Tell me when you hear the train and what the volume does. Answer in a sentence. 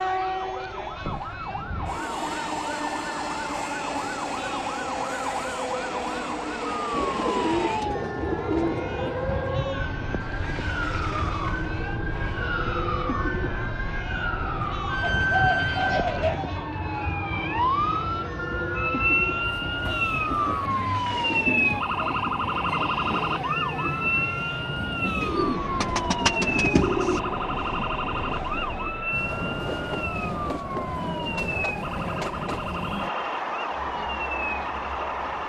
You can hear the train from 0.0 to 35.4 s, at a steady volume.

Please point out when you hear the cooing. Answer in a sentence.
You can hear the cooing from 6.9 to 9.2 s, from 15.2 to 16.6 s and from 25.2 to 27.2 s.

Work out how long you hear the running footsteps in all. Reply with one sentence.
The running footsteps can't be heard in this clip.